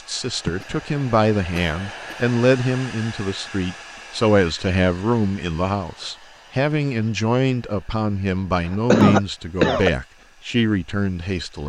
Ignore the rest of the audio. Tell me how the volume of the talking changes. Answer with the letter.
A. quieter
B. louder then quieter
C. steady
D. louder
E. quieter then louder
C.